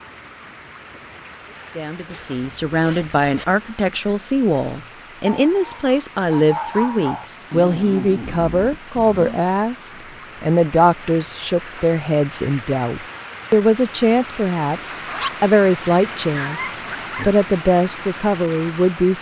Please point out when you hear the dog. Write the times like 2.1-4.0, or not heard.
5.2-7.2, 16.2-17.3.